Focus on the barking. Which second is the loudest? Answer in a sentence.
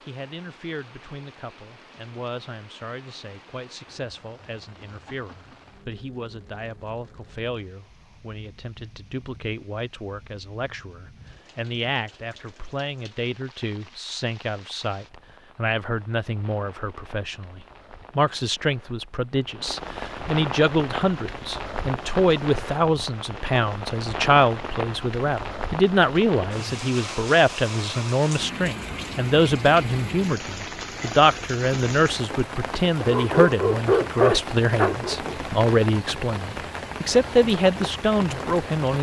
The loudest moment of the barking is at 34 seconds.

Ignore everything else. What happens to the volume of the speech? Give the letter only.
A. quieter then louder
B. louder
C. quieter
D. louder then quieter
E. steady
B.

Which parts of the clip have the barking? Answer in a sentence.
The barking can be heard from 33.0 to 35.4 s.